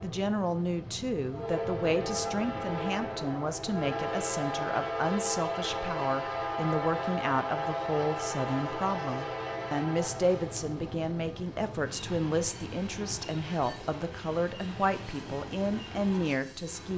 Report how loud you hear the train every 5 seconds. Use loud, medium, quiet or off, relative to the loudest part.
loud, loud, medium, medium.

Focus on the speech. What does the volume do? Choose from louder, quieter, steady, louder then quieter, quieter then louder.
steady.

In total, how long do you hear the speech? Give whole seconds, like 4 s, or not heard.
17 s.